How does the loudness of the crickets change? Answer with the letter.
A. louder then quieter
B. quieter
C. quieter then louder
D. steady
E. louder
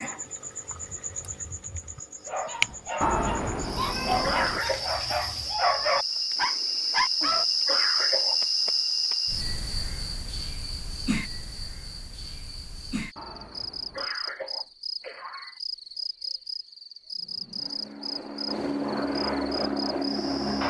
A.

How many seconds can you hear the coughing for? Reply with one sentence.
You can hear the coughing for 3 seconds altogether.